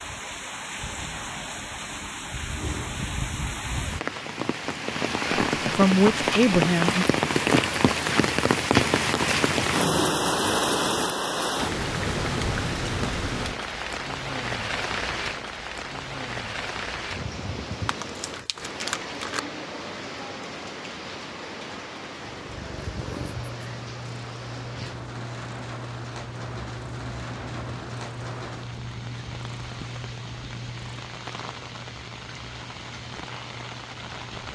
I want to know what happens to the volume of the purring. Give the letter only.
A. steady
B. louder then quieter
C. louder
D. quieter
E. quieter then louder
D.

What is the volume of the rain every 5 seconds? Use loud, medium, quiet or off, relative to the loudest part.
medium, loud, loud, medium, quiet, quiet, quiet.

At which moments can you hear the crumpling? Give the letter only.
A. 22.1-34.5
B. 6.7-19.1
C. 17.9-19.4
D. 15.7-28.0
C.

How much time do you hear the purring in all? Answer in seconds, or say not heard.
12 s.